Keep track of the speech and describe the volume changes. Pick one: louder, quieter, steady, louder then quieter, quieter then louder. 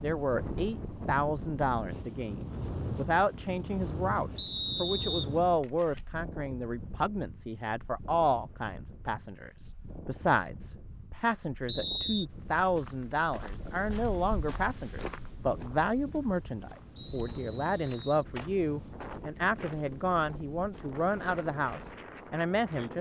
steady.